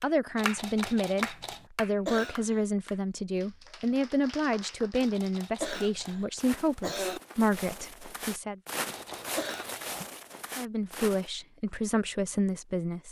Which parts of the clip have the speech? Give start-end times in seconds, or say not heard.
0.0-8.6, 10.6-13.0.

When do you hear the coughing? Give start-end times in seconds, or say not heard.
2.0-2.6, 5.6-7.2, 9.3-9.8.